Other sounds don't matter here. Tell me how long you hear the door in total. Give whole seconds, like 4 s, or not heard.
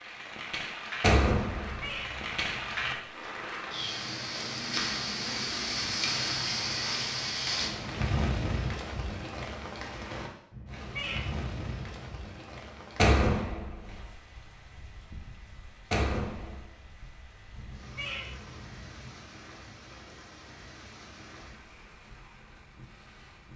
3 s.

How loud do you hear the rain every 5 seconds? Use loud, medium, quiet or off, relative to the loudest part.
loud, loud, medium, quiet, quiet.